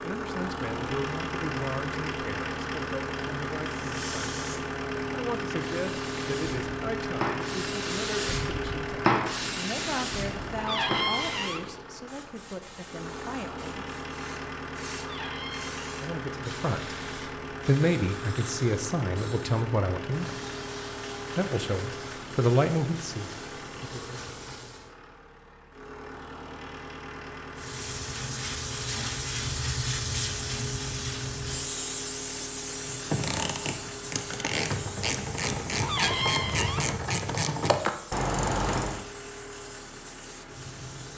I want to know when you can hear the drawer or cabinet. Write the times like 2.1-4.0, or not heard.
10.6-11.7, 14.9-15.8, 35.8-36.9.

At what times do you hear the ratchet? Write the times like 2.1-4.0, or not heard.
32.9-39.0.